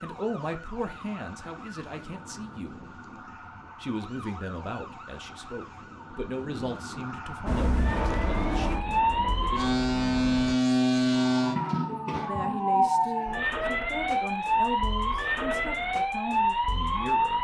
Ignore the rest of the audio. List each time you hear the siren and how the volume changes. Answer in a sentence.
The siren can be heard from 0.0 to 17.3 s, getting louder.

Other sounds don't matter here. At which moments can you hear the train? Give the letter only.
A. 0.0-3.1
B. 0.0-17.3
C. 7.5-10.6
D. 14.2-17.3
C.